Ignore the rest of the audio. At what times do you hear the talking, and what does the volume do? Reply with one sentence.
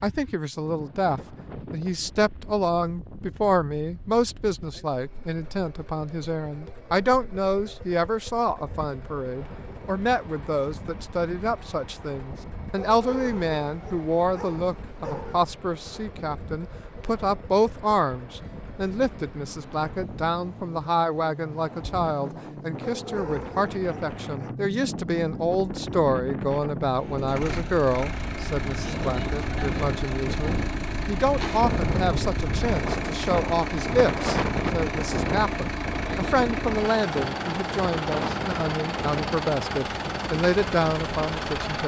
The talking can be heard from 0.0 to 41.8 s, at a steady volume.